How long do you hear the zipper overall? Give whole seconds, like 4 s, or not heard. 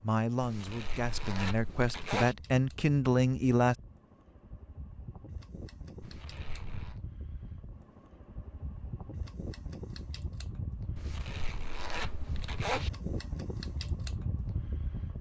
5 s.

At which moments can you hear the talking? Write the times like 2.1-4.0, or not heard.
0.0-3.8.